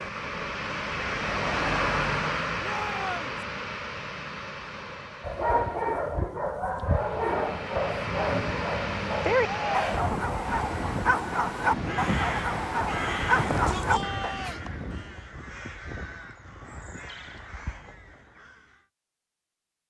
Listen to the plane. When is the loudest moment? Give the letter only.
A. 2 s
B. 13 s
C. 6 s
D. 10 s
A.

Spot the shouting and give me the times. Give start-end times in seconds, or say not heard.
2.6-3.4, 9.4-10.1, 13.3-14.6.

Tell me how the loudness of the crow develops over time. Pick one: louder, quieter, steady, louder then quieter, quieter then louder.
quieter.